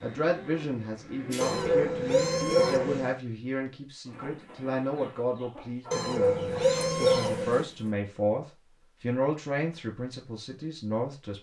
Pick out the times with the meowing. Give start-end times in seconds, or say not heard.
1.4-3.1, 5.9-7.7.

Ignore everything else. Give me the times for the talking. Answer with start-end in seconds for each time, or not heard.
0.0-11.3.